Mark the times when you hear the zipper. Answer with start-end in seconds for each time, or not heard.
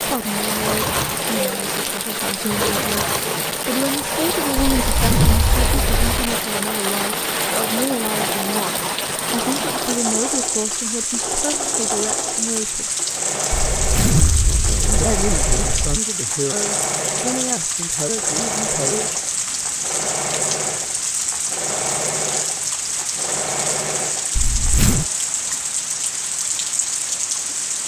4.8-6.3, 13.5-16.0, 24.4-25.1.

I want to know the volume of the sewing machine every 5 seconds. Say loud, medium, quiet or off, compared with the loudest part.
loud, loud, loud, loud, loud, off.